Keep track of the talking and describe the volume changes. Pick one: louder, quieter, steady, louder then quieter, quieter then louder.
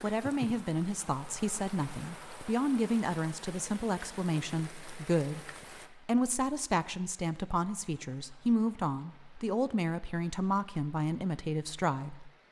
steady.